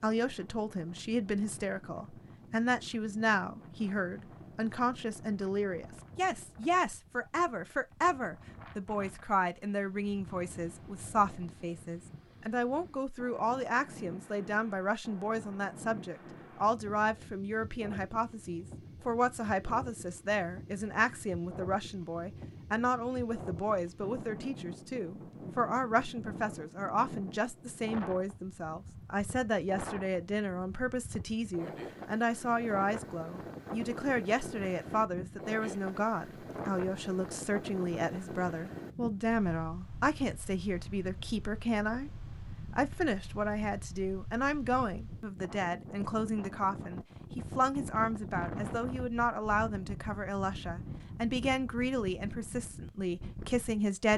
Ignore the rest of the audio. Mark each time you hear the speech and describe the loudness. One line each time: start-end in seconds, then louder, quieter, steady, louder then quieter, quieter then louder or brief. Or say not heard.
0.0-54.1 steady.